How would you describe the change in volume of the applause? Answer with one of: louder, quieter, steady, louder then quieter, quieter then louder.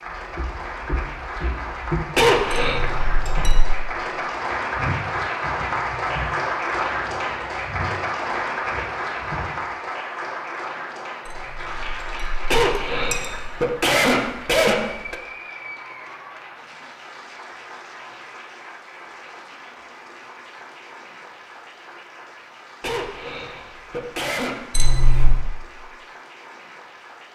quieter.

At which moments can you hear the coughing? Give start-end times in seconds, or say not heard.
2.1-2.8, 12.5-15.2, 22.8-24.8.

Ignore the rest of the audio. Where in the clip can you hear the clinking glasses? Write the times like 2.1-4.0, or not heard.
2.5-3.8, 11.2-13.6, 24.8-25.4.